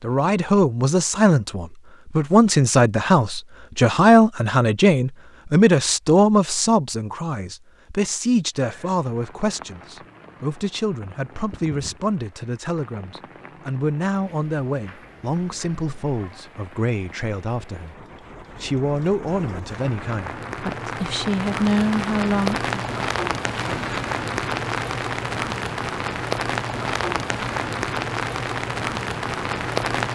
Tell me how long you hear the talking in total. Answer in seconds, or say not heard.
22 s.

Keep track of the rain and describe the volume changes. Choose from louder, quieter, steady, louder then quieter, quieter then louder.
louder.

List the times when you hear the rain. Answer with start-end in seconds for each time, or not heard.
8.6-30.1.